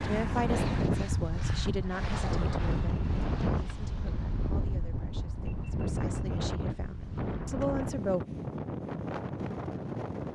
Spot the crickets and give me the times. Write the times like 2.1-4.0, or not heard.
not heard.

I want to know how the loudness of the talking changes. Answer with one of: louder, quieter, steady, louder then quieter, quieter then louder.
quieter then louder.